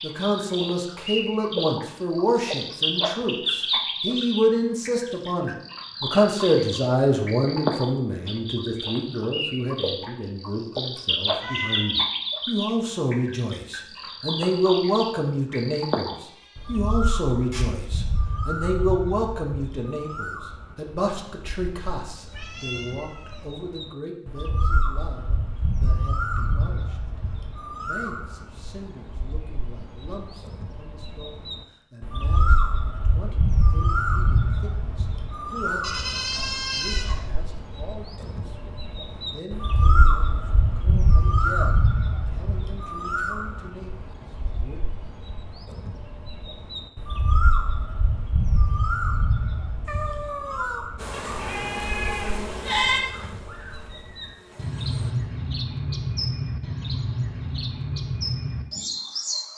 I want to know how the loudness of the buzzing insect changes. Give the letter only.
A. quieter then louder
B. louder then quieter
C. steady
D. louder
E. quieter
E.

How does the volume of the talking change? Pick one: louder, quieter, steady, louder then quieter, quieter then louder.
quieter.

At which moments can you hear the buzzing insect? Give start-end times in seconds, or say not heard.
51.0-55.1.